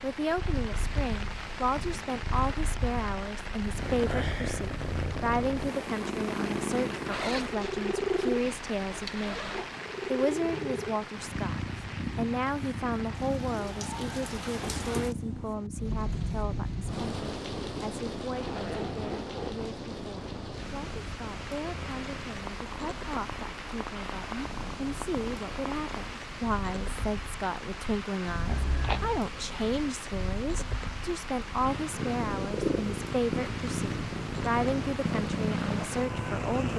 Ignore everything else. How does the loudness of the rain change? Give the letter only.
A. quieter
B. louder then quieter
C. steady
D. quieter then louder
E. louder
C.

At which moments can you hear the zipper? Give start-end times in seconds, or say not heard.
7.1-9.7, 18.4-19.7, 28.5-29.2.